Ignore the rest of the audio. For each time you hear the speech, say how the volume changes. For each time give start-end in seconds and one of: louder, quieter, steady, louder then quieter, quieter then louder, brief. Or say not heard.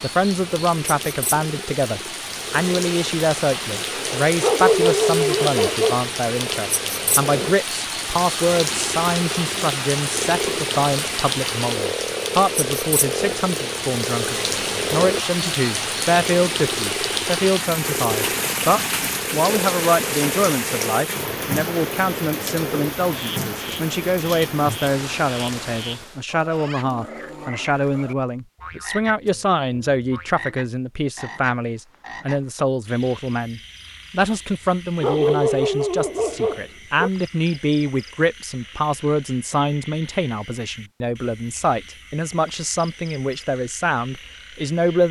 0.0-45.0 steady.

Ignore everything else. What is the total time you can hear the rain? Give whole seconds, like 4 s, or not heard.
26 s.